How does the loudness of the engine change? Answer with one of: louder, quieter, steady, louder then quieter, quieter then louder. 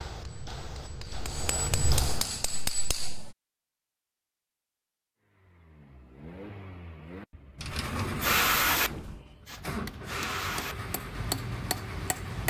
louder then quieter.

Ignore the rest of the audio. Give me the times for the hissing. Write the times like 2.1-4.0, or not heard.
0.0-2.6, 8.2-10.8.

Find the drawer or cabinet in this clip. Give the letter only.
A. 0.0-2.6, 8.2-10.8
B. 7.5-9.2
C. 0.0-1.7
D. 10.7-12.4
B.